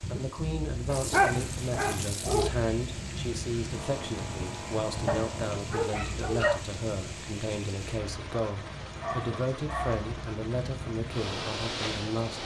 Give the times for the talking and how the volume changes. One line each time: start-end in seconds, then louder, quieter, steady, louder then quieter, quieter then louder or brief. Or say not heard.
0.1-12.4 steady.